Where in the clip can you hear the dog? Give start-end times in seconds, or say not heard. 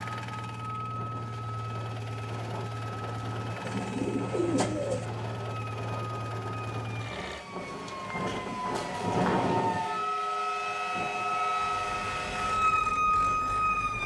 not heard.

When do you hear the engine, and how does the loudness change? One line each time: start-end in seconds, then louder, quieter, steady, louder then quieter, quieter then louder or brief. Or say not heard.
0.0-7.5 steady
11.6-14.0 brief.